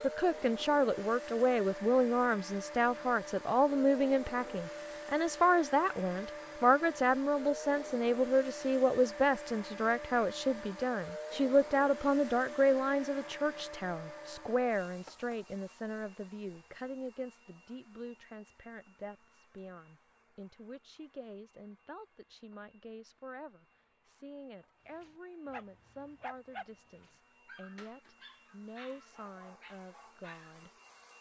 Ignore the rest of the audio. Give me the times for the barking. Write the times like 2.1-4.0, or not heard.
25.0-30.6.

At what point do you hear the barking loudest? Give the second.
26 s.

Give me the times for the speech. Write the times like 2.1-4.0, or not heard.
0.0-30.7.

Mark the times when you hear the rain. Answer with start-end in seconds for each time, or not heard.
not heard.